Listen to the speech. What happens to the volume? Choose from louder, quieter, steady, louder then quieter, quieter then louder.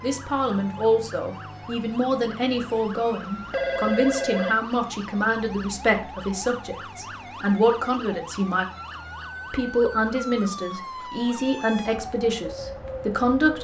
steady.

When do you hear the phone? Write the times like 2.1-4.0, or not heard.
3.5-4.7.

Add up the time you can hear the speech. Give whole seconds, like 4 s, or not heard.
13 s.